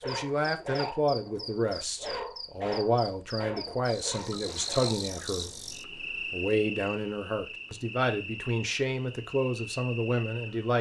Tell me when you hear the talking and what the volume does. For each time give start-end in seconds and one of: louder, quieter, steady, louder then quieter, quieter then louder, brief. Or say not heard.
0.1-10.7 steady.